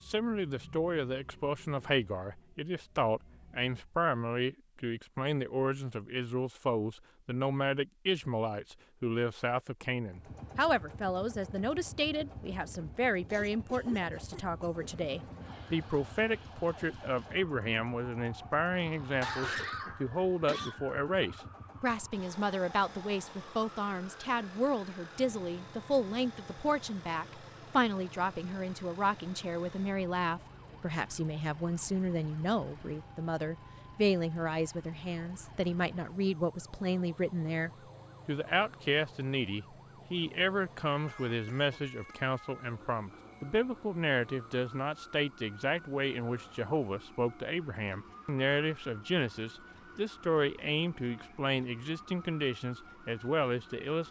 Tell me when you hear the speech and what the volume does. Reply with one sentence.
You can hear the speech from 0.1 to 54.0 s, at a steady volume.